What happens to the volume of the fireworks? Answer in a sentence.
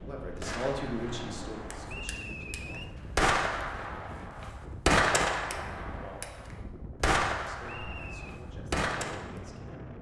The volume of the fireworks goes up, then down.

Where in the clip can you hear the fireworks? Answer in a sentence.
You can hear the fireworks from 0.4 to 9.3 s.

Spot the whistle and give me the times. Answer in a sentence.
The whistle can be heard from 1.9 to 2.9 s and from 7.7 to 8.3 s.